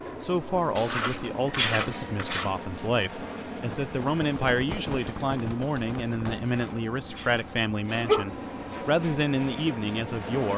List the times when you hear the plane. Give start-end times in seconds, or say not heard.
0.0-10.5.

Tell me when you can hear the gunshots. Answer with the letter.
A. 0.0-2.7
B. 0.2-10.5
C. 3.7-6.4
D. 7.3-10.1
C.